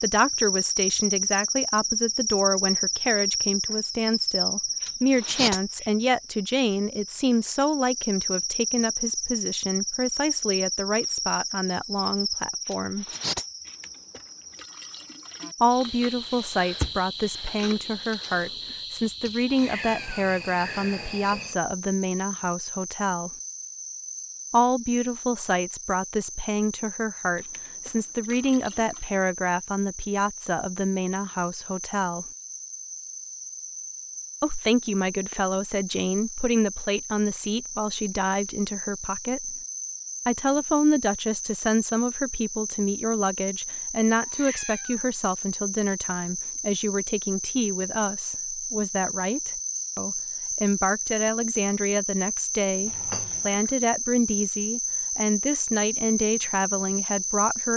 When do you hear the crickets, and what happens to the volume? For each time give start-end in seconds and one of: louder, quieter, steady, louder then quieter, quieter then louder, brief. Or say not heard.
0.0-57.7 quieter then louder.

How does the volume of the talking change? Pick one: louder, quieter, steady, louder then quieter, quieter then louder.
steady.